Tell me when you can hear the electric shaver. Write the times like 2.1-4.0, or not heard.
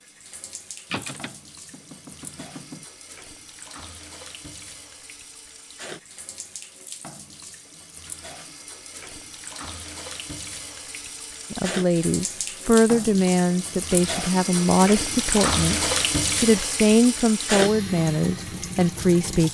not heard.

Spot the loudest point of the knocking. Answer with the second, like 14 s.
1 s.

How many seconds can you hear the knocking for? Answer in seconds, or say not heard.
2 s.